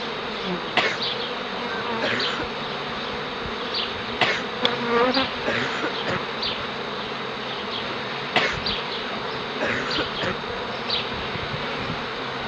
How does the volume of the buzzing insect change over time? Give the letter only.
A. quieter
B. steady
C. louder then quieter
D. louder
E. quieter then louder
B.